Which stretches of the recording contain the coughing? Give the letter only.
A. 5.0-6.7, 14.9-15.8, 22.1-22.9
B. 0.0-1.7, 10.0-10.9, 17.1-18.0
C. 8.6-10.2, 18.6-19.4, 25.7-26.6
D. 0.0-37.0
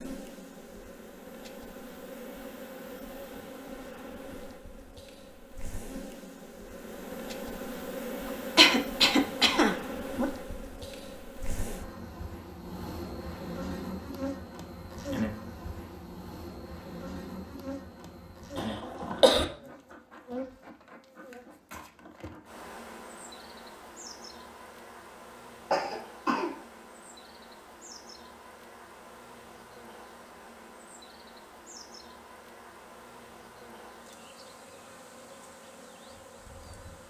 C.